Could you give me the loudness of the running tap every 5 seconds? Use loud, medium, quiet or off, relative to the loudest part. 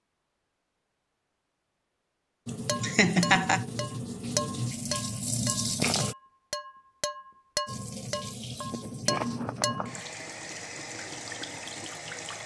loud, loud, medium.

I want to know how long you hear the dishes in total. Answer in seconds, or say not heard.
7 s.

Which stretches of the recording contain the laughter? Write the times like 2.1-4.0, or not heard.
2.8-3.6.